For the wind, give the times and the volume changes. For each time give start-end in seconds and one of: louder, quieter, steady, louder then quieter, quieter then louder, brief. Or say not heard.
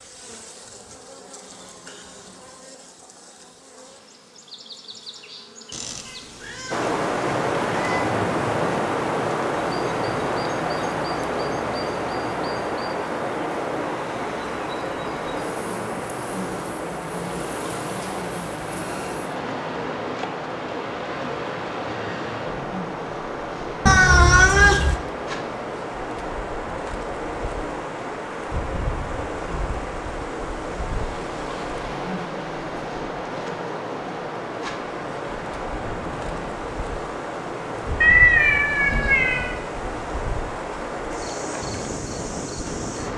6.7-43.1 quieter.